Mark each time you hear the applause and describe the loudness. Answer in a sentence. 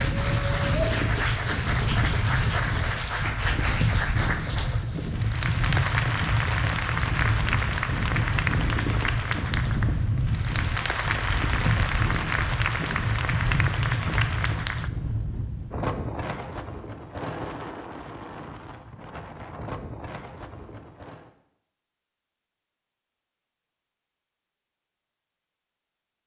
The applause can be heard from 0.0 to 14.9 s, at a steady volume.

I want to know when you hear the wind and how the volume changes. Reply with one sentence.
The wind can be heard from 0.0 to 21.3 s, getting quieter.